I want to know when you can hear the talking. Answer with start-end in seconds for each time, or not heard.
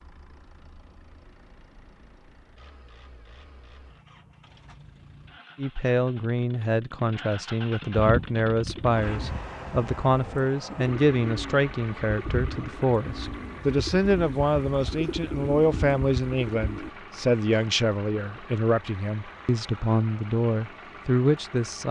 5.5-21.8.